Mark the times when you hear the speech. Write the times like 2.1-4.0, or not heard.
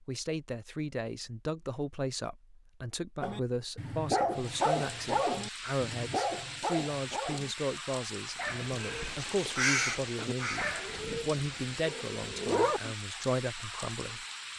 0.0-14.2.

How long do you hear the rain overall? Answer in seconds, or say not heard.
10 s.